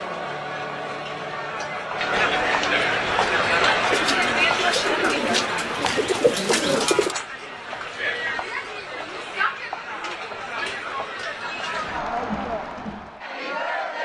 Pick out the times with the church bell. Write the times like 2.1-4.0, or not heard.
not heard.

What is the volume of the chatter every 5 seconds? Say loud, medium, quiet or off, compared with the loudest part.
loud, medium, medium.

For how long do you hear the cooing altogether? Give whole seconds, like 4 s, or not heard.
4 s.